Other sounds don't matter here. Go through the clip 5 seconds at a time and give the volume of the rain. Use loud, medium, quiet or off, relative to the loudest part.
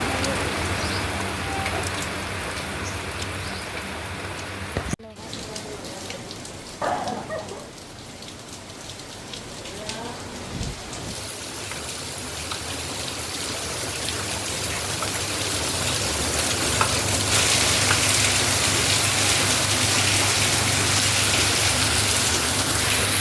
medium, quiet, medium, loud, loud.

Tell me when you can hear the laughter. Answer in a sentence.
You can hear the laughter from 6.8 to 7.7 s.